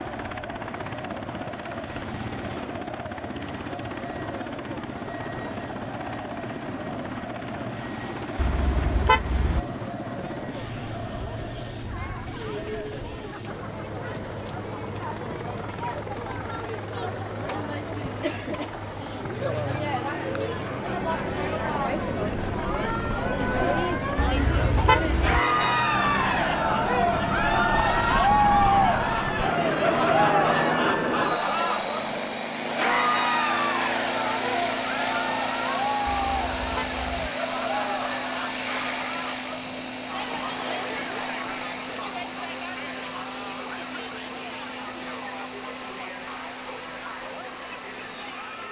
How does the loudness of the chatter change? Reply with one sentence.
The loudness of the chatter goes up, then down.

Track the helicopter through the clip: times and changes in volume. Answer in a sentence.
The helicopter can be heard from 0.0 to 48.6 s, getting louder then quieter.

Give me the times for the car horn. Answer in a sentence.
You can hear the car horn from 8.3 to 9.6 s, from 24.1 to 25.4 s and from 36.0 to 37.3 s.